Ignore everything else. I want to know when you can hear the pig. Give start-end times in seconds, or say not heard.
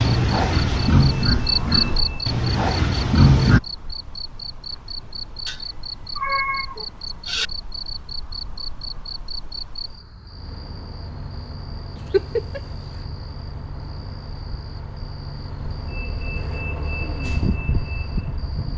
0.0-3.6.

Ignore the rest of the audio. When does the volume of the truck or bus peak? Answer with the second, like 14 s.
17 s.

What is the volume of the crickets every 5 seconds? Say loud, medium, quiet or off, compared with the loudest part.
loud, medium, quiet, medium.